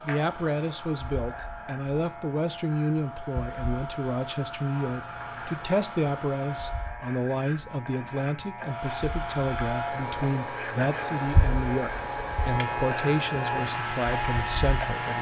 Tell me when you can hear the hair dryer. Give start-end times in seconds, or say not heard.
0.0-7.0, 8.6-15.1.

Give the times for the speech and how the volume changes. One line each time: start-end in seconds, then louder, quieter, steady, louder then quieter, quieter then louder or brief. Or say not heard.
0.0-15.1 steady.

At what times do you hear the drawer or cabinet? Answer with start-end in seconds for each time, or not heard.
not heard.